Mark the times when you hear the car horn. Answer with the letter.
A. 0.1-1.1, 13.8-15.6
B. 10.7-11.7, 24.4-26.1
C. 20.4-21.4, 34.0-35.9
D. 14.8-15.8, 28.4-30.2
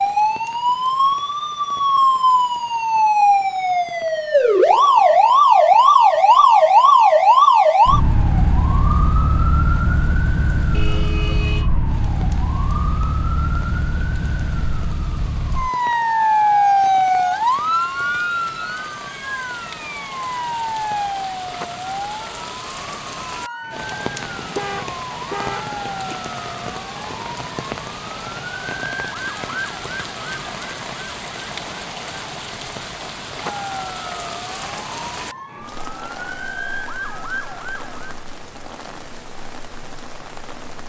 B.